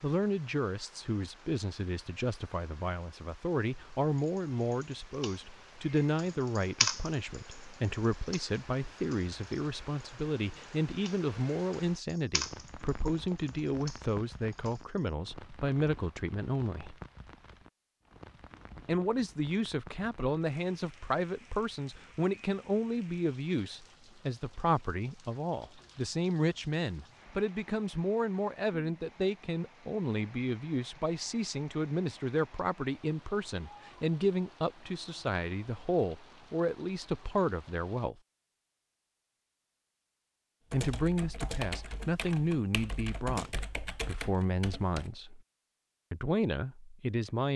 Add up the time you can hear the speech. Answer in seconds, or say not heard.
42 s.